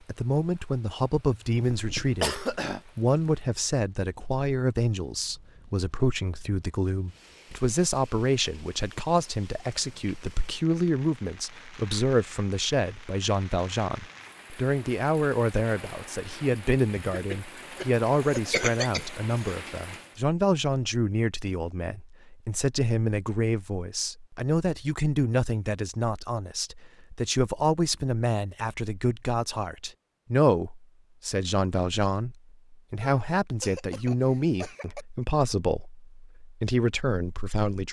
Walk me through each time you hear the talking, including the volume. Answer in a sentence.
The talking can be heard from 0.1 to 37.8 s, at a steady volume.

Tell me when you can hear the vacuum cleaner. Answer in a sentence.
You can't hear the vacuum cleaner here.